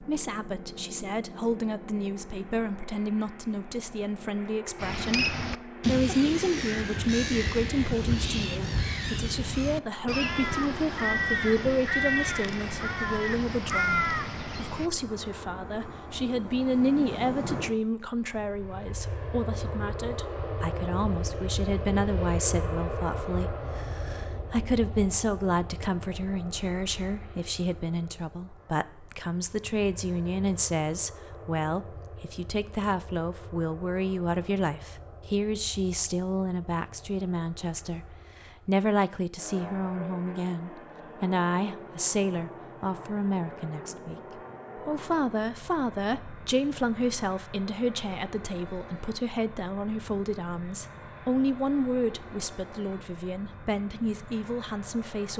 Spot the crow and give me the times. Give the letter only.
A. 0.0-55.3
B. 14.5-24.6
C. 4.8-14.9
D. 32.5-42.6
C.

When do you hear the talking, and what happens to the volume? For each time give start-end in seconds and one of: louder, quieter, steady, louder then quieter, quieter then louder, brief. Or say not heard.
0.0-55.3 steady.